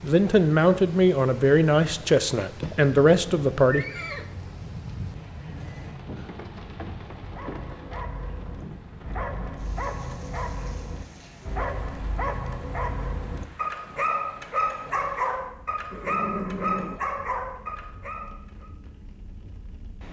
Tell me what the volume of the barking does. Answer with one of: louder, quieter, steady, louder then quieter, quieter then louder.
louder.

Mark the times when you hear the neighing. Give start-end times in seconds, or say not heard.
2.6-4.3, 15.9-17.0.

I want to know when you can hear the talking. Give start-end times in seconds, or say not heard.
0.0-3.9.